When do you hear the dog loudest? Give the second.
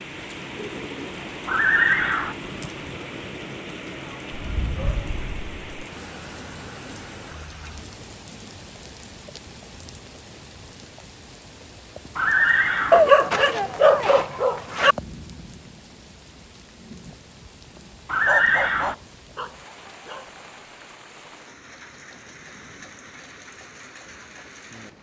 13 s.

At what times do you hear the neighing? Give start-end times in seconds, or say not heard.
1.4-2.4, 12.2-13.0, 18.1-18.9.